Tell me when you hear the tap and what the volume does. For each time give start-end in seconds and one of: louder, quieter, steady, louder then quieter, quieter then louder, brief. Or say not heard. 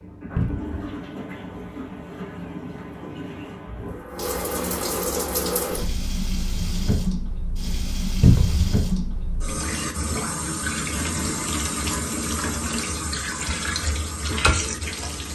0.0-15.3 louder.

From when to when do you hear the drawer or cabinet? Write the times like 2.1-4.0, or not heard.
0.3-0.8, 8.2-8.8.